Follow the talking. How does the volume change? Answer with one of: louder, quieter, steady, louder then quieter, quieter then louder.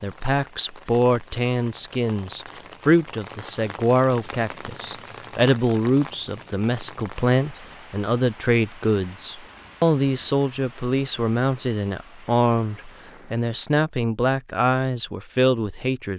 steady.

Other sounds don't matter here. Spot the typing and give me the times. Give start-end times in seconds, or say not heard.
not heard.